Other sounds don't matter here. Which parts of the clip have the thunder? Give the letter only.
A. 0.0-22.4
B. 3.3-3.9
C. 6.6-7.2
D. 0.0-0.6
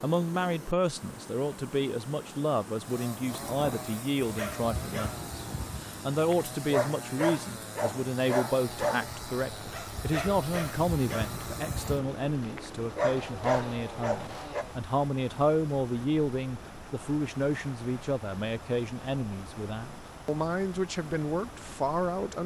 B.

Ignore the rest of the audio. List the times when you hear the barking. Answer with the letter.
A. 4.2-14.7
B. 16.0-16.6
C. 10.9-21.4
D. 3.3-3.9
A.